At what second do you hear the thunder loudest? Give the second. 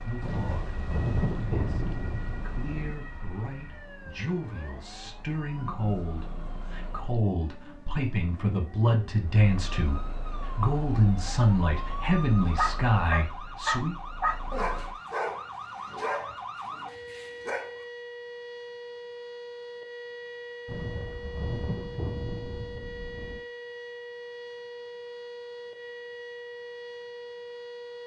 1 s.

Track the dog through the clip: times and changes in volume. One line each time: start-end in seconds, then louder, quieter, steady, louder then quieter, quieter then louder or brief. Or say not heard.
12.6-17.9 quieter.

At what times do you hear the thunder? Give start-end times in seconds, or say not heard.
0.2-3.0, 20.6-23.4.